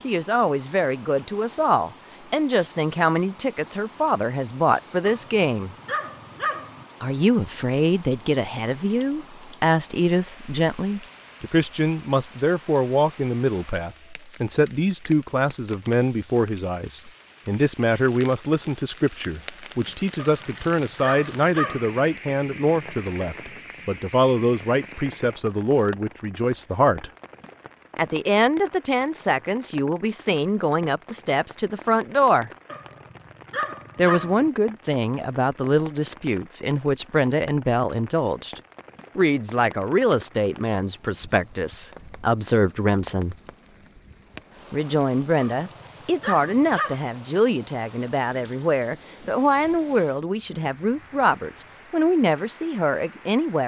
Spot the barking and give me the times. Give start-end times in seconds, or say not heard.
5.0-6.8, 20.1-22.0, 32.6-34.5, 45.4-47.0.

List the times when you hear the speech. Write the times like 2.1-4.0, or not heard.
0.0-5.8, 7.0-27.1, 27.9-32.5, 34.0-43.4, 44.7-53.6.